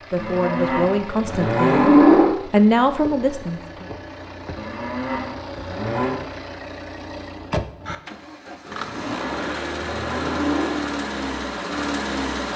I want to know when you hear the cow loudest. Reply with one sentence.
The volume of the cow peaks at 2 seconds.